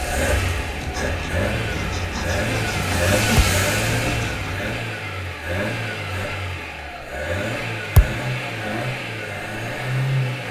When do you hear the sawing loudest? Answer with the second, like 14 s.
3 s.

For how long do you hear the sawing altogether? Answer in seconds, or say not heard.
5 s.